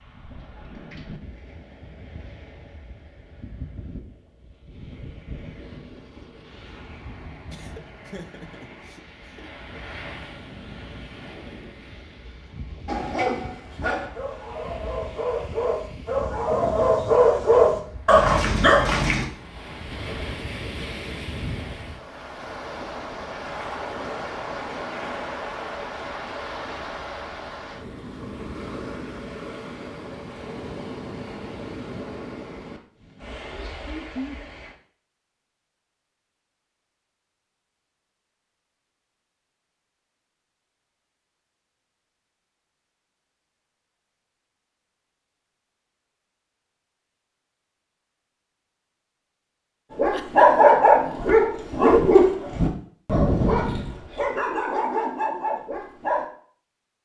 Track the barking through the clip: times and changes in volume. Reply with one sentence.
The barking can be heard from 12.8 to 19.2 s, getting louder; and from 50.0 to 56.2 s, getting quieter.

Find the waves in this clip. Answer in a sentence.
You can hear the waves from 0.0 to 34.8 s.